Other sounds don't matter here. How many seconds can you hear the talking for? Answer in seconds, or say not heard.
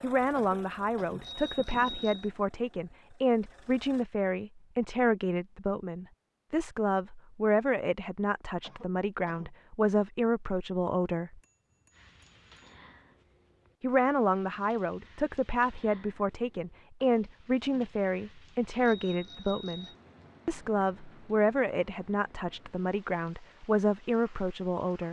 22 s.